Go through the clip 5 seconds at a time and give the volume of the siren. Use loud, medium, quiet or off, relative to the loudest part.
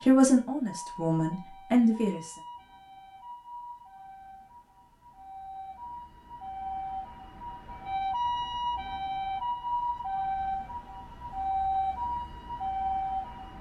quiet, loud, loud.